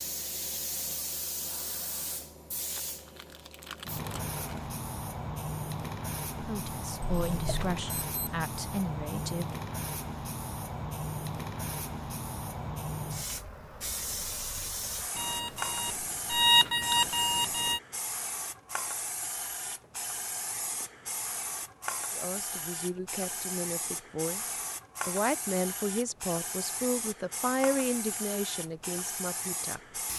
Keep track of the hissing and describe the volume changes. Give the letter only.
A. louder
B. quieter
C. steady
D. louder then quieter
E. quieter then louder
C.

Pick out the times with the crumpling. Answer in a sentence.
The crumpling can be heard from 2.7 to 4.7 s.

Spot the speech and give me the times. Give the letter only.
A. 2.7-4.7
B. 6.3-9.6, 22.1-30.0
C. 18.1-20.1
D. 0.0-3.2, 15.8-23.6
B.